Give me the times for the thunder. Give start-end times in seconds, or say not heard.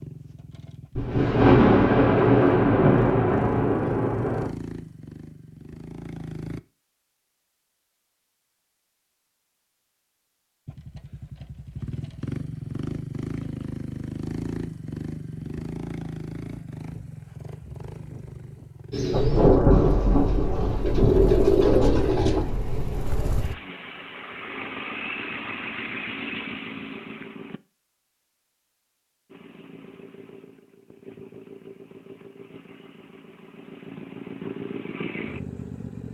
0.9-4.5, 19.1-23.6.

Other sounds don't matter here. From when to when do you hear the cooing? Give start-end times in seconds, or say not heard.
18.9-22.4.